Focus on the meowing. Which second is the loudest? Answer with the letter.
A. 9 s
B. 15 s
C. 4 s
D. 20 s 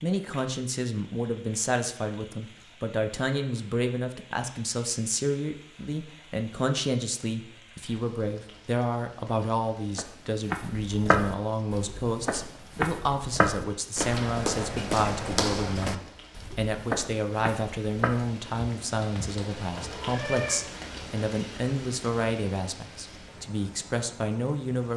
D.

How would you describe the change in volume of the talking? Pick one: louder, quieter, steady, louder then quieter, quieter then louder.
steady.